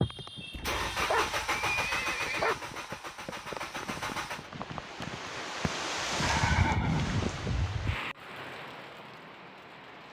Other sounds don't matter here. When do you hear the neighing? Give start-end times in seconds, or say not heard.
0.8-2.5, 6.2-8.0.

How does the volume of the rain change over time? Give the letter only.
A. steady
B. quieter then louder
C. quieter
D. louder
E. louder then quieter
E.